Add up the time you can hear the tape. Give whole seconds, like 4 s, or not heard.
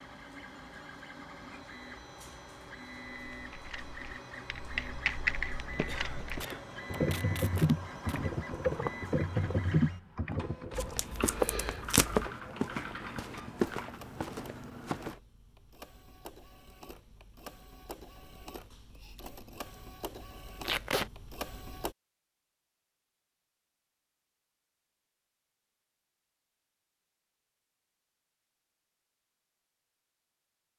4 s.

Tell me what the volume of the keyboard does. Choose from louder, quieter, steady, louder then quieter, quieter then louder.
quieter.